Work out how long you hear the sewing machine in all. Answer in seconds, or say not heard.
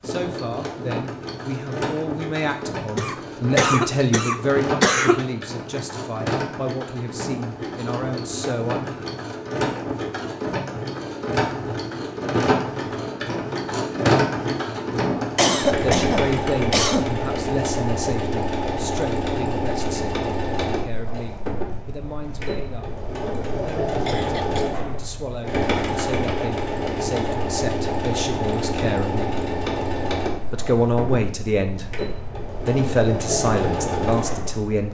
35 s.